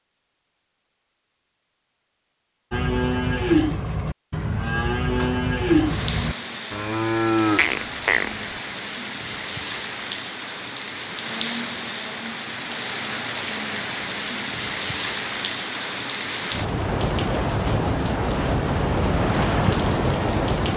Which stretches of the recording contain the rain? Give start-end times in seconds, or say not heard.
5.0-20.7.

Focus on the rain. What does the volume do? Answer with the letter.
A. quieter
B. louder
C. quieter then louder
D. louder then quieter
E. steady
B.